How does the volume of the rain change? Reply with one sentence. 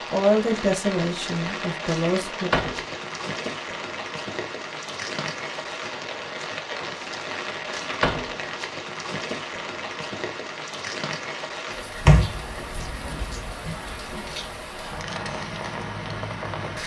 The volume of the rain stays about the same.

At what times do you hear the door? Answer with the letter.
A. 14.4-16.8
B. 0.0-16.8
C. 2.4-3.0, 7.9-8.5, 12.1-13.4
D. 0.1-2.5
C.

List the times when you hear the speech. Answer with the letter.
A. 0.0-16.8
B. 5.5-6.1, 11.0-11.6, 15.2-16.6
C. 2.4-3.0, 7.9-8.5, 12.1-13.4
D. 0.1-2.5
D.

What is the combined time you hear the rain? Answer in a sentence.
The rain can be heard for 17 seconds in total.